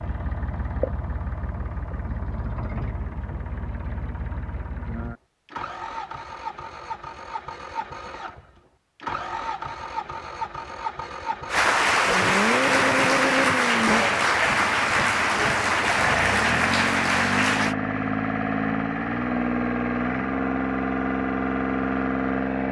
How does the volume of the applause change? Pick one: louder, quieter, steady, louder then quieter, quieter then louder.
steady.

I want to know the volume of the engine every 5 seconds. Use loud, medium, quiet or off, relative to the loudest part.
medium, medium, loud, loud, loud.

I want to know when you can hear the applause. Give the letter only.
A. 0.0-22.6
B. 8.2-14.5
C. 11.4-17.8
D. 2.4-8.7
C.